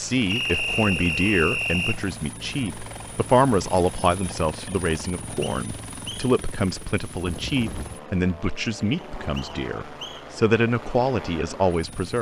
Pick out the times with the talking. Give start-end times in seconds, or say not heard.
0.0-12.1.